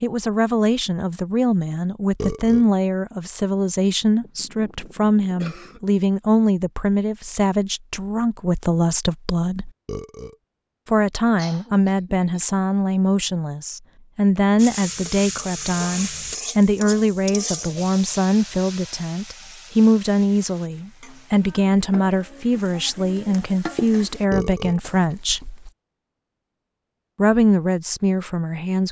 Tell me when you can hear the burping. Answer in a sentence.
You can hear the burping from 2.1 to 2.7 s, from 9.8 to 10.3 s and from 24.3 to 24.8 s.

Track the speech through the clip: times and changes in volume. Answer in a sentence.
You can hear the speech from 0.0 to 9.7 s, at a steady volume; from 10.8 to 25.5 s, at a steady volume; and briefly from 27.1 to 28.8 s.